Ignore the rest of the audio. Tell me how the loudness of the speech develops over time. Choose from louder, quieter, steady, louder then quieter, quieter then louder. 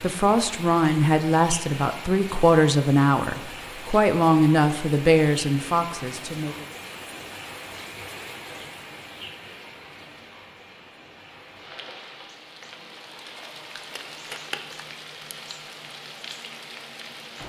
steady.